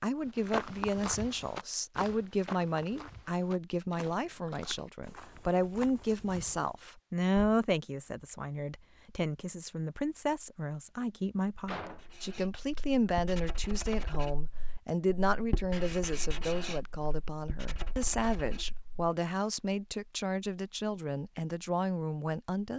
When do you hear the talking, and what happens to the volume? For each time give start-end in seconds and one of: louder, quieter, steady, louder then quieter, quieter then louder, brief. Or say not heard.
0.0-22.7 steady.